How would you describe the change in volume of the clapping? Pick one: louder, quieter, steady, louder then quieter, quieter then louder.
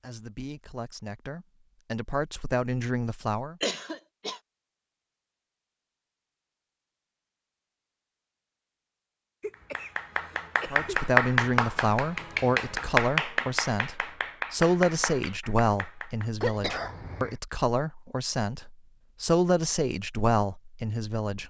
quieter.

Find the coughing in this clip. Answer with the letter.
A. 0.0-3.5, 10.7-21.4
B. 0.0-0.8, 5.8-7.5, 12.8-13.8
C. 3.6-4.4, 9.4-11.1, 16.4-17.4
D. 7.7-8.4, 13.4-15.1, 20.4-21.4
C.